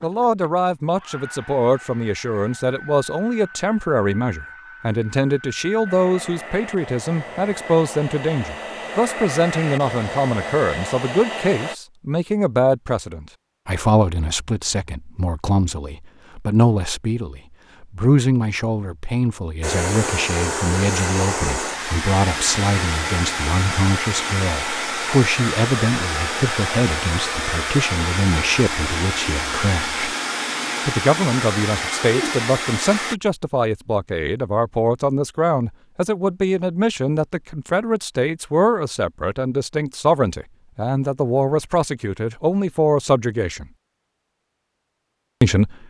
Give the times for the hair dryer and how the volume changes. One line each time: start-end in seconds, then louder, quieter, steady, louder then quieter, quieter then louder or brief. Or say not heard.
0.0-11.8 louder
19.6-33.1 steady.